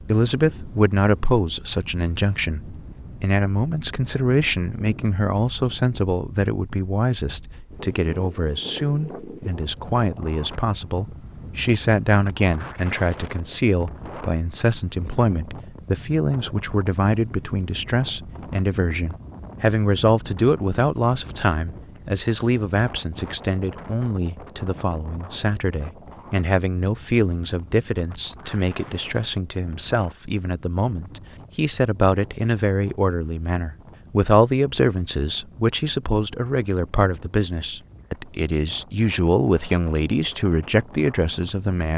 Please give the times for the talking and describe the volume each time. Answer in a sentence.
The talking can be heard from 0.1 to 41.9 s, at a steady volume.